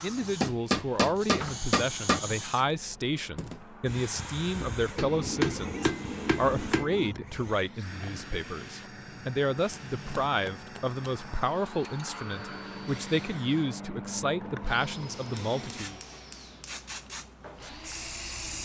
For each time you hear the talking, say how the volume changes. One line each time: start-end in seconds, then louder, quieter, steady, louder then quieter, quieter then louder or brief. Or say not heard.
0.0-16.0 steady.